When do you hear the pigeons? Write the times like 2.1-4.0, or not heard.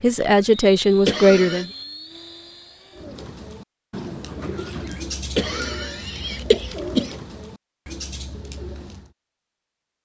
2.9-9.1.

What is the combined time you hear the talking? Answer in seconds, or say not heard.
2 s.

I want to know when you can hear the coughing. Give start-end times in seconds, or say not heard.
1.1-1.6, 5.3-7.2.